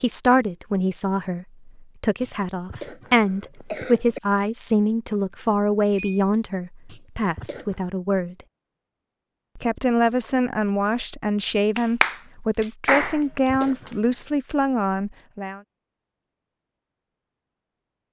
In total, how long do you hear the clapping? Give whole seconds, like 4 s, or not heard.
2 s.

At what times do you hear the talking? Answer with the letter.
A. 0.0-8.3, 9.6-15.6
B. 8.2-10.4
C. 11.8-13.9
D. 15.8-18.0
A.